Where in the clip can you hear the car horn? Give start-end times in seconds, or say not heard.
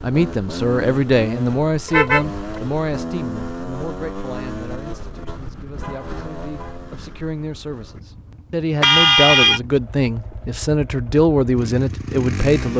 1.9-2.6, 5.8-6.8, 8.8-9.6.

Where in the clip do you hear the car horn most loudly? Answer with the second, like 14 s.
9 s.